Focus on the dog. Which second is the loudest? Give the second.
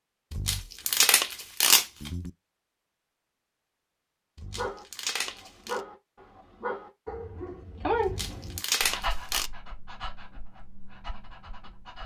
8 s.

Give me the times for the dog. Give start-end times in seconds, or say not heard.
4.5-12.0.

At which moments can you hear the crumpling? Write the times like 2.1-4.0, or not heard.
0.3-2.3, 4.3-5.8, 8.0-9.5.